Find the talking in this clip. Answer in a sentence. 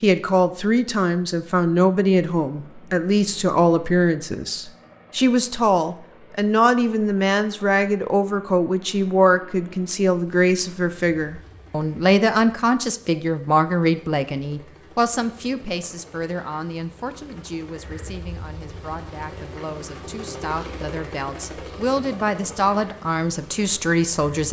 The talking can be heard from 0.0 to 24.4 s.